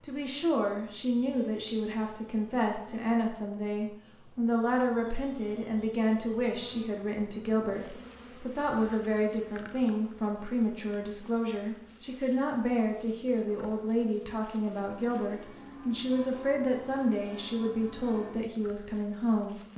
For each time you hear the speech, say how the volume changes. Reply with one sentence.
You can hear the speech from 0.0 to 19.7 s, at a steady volume.